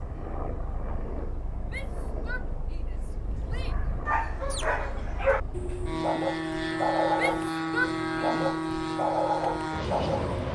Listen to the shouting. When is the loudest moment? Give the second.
8 s.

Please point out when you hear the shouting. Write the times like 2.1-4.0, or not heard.
1.6-3.8, 7.2-8.4.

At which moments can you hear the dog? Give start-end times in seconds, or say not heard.
3.1-10.4.